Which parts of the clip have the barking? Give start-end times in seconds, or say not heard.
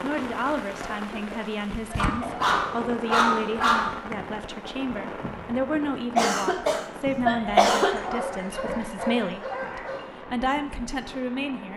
1.9-3.9, 7.5-10.0.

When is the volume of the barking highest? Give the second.
3 s.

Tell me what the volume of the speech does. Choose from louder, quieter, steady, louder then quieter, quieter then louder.
steady.